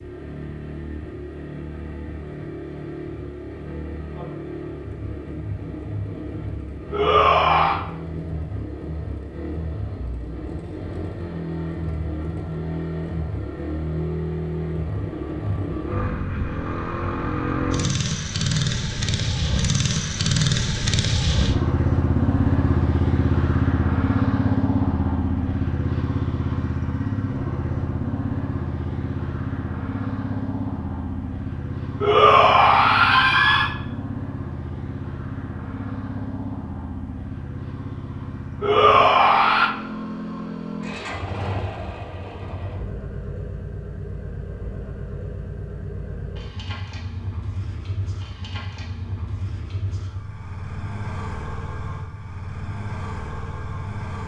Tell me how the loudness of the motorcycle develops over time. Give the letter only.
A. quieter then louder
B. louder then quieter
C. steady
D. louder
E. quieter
B.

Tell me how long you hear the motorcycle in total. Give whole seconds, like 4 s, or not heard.
54 s.